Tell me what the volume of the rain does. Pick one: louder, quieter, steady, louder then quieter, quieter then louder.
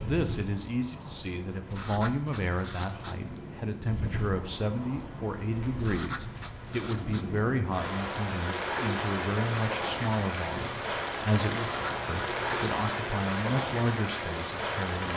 louder.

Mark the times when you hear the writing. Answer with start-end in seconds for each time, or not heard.
1.7-3.1, 5.8-7.2, 11.5-13.0.